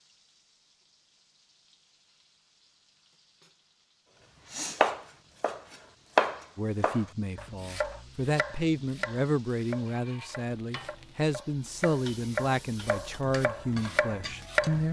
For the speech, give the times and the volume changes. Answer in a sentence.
You can hear the speech from 6.5 to 14.8 s, at a steady volume.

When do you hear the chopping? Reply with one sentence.
You can hear the chopping from 4.5 to 14.8 s.